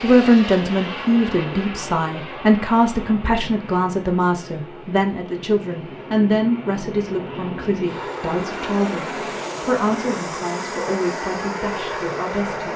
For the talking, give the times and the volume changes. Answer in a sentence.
You can hear the talking from 0.0 to 12.7 s, getting quieter.